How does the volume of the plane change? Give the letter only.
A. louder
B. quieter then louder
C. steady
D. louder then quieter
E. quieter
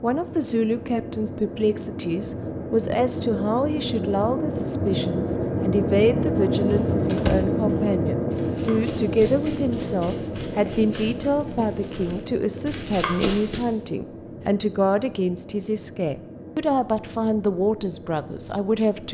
D.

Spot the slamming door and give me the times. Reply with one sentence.
You can hear the slamming door from 7.1 to 7.5 s.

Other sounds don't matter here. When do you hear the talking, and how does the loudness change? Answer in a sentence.
The talking can be heard from 0.0 to 19.0 s, at a steady volume.